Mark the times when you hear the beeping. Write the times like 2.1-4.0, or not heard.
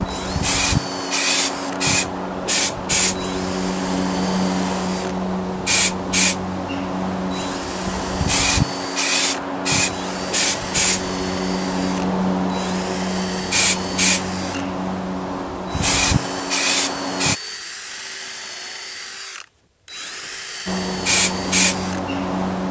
not heard.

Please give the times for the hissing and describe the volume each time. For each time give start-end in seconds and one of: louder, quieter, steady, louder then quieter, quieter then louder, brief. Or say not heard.
0.0-17.4 steady
20.6-22.6 brief.